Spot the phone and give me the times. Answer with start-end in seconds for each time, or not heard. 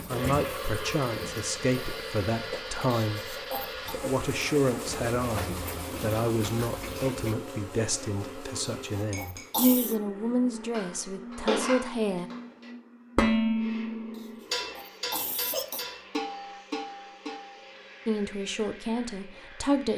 not heard.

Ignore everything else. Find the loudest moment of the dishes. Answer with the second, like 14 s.
13 s.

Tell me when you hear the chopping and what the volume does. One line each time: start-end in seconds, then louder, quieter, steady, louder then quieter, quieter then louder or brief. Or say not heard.
not heard.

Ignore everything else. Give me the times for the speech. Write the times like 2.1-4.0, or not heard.
0.1-12.3, 18.1-19.9.